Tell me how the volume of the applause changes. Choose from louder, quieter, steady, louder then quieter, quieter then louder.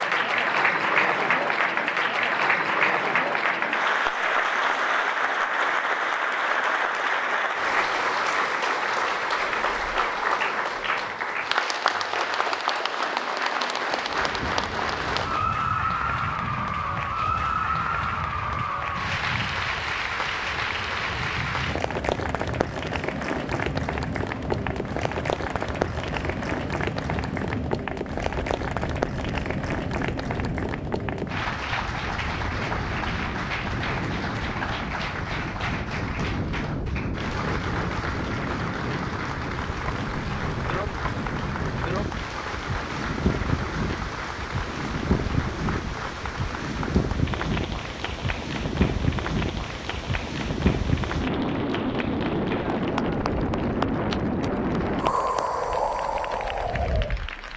quieter.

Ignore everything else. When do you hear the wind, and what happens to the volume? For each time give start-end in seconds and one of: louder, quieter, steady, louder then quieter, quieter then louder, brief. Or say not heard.
13.9-57.5 louder.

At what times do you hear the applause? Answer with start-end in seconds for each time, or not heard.
0.0-57.5.